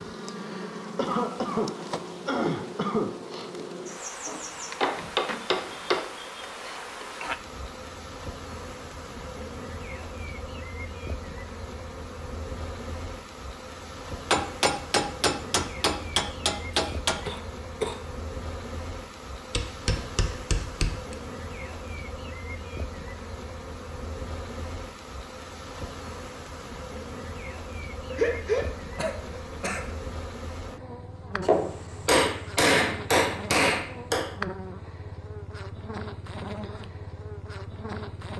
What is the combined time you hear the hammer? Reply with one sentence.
You can hear the hammer for 9 seconds altogether.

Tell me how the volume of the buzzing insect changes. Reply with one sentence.
The loudness of the buzzing insect stays about the same.